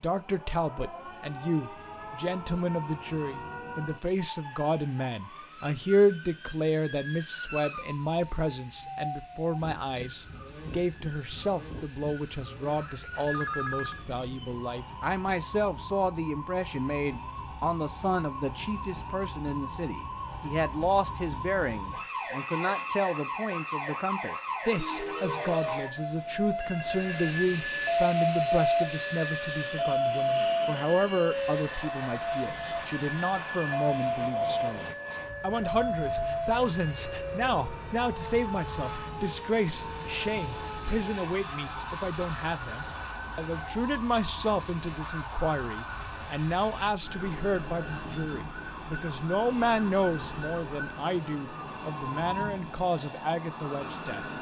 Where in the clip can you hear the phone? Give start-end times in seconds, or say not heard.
13.2-14.1, 26.6-27.4, 37.0-38.0.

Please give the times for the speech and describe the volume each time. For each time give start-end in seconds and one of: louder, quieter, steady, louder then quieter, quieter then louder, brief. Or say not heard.
0.0-54.2 steady.